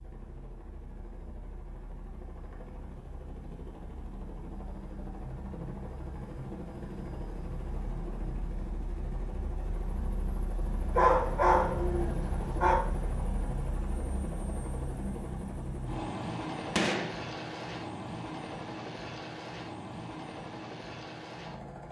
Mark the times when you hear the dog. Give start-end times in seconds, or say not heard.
10.9-12.8.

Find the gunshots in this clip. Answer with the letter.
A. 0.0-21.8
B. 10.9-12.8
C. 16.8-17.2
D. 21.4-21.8
C.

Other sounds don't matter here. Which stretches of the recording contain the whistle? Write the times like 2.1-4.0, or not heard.
not heard.